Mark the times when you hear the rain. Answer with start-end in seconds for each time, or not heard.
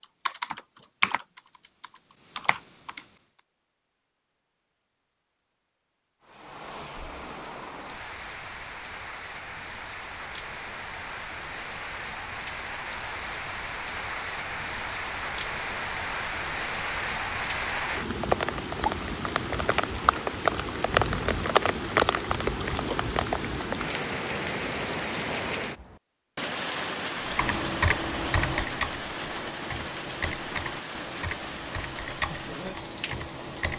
6.2-33.7.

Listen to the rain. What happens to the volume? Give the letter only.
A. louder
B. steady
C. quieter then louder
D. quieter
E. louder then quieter
E.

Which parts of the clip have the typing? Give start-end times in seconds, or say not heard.
0.0-3.0, 27.2-33.7.